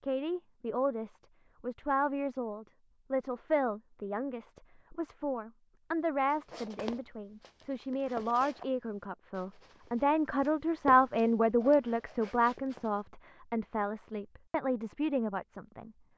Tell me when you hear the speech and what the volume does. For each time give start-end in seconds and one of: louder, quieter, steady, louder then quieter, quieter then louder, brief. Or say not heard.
0.0-15.9 louder then quieter.